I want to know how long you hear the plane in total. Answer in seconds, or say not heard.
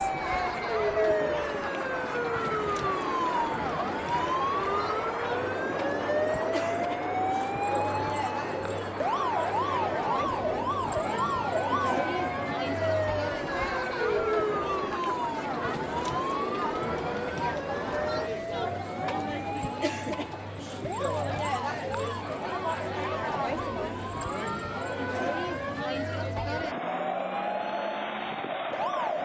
18 s.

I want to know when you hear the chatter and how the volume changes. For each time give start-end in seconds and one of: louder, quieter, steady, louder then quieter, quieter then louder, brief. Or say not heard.
0.0-29.2 steady.